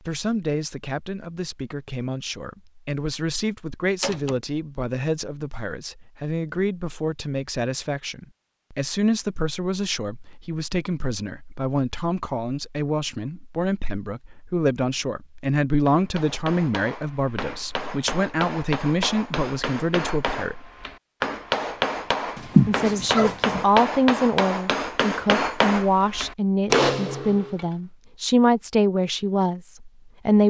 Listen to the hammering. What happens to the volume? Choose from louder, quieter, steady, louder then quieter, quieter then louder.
louder.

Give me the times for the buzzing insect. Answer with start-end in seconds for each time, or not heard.
not heard.